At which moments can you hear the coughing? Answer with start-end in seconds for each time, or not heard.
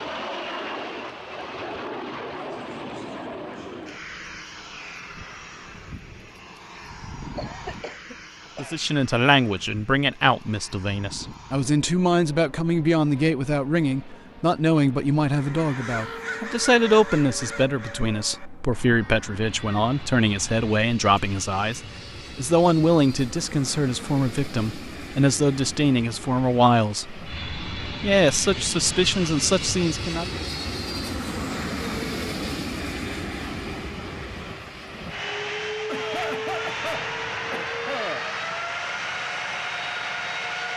7.3-8.8, 35.9-38.2.